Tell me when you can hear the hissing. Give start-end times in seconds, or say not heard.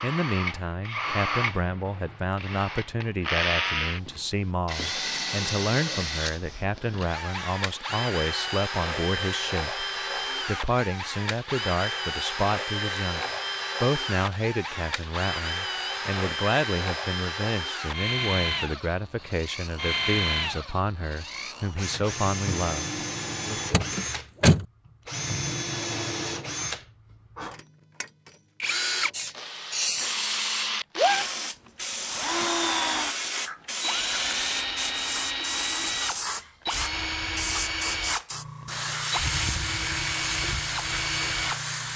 29.1-41.9.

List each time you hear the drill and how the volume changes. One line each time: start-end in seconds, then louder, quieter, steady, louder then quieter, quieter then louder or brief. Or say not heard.
0.0-41.6 steady.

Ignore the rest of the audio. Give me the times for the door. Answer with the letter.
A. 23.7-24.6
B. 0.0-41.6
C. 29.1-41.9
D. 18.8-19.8
A.